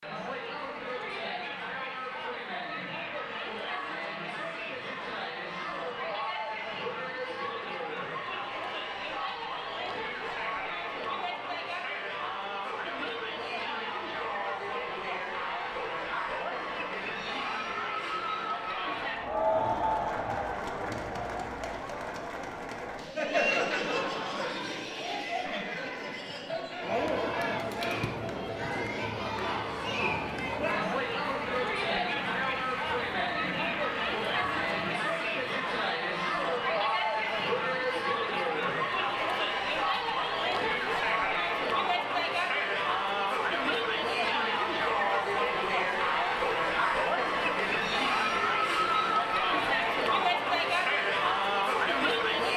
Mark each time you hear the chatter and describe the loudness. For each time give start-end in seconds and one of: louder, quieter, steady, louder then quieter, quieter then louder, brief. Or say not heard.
0.0-52.5 louder.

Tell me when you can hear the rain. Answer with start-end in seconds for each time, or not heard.
not heard.